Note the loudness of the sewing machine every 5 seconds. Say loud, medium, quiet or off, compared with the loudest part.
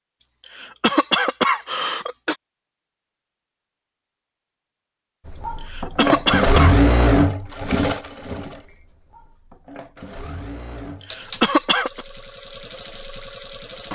off, loud, quiet.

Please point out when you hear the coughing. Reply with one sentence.
The coughing can be heard from 0.2 to 2.4 s, from 5.3 to 6.8 s and from 10.8 to 12.1 s.